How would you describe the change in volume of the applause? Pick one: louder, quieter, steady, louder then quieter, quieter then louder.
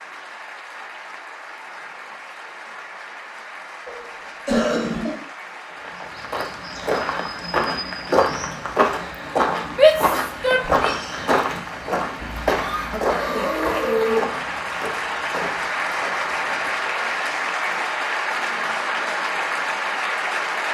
louder.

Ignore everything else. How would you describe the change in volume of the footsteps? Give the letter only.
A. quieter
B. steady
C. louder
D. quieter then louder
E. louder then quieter
A.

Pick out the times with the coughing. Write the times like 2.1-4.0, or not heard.
3.9-5.2, 12.2-14.2.